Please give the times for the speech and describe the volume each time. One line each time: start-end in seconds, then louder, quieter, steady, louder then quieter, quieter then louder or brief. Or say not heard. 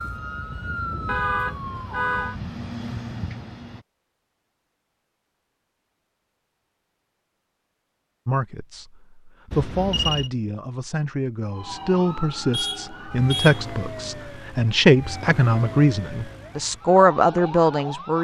8.2-18.1 louder.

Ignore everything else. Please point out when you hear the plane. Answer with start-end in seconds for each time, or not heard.
0.0-3.9.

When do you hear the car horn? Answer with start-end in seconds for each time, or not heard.
1.1-2.4, 9.5-10.3, 12.5-13.7.